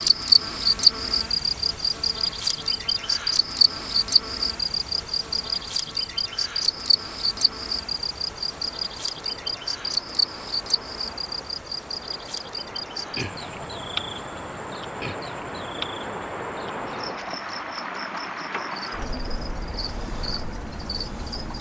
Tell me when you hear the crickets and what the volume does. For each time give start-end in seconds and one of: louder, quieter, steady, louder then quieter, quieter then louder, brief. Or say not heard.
0.0-21.5 quieter.